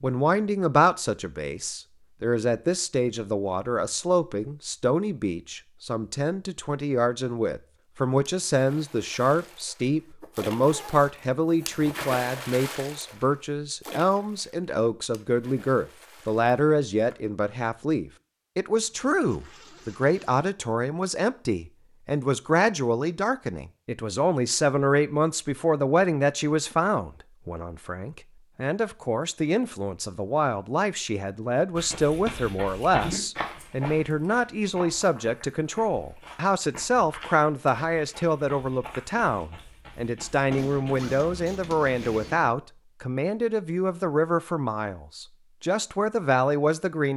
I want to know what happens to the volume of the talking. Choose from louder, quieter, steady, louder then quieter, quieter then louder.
steady.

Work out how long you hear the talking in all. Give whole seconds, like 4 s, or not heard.
47 s.